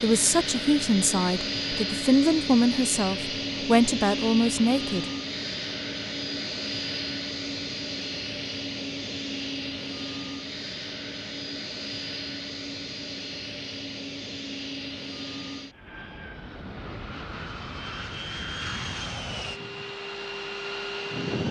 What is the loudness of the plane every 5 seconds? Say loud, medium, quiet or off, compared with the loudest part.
loud, loud, medium, medium, loud.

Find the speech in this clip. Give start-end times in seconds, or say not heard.
0.0-5.0.